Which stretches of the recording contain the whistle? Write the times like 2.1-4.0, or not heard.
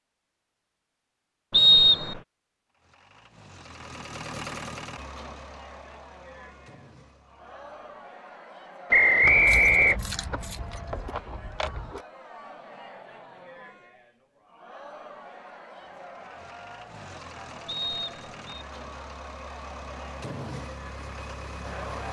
1.5-2.2, 8.9-9.9, 17.6-18.6.